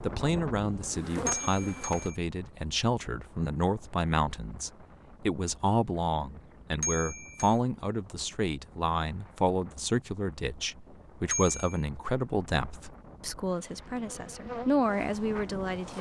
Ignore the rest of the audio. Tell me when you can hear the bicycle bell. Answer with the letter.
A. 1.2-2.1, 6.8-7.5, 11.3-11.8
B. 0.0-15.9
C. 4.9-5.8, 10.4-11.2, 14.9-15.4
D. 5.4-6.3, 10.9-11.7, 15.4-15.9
A.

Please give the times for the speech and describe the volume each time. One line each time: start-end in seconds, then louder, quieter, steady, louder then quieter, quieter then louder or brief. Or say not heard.
0.0-15.9 steady.